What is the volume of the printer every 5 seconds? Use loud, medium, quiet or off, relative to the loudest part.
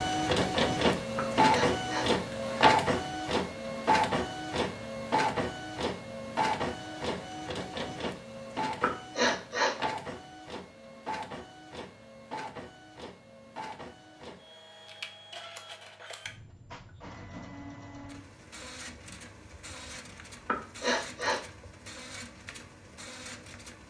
loud, medium, quiet, quiet, quiet.